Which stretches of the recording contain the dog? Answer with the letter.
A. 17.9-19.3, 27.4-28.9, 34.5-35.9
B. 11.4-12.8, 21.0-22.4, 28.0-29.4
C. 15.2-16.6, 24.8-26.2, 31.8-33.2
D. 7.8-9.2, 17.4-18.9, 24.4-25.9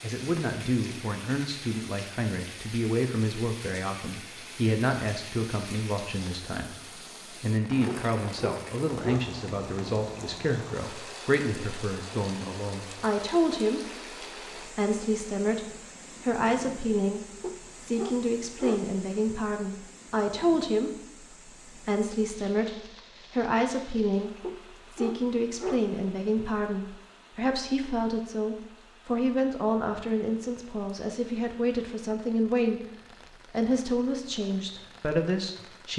D.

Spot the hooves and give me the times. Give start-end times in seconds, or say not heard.
not heard.